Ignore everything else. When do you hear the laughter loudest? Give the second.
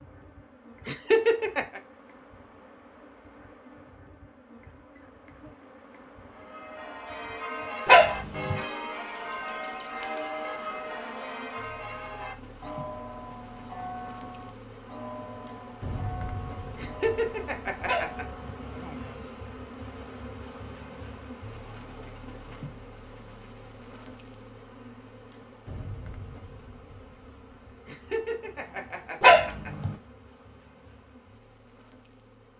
1 s.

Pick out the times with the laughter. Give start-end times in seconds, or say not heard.
0.8-1.8, 16.8-18.2, 27.9-29.7.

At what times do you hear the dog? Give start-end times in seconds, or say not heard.
7.8-8.6, 17.9-18.6, 29.2-29.9.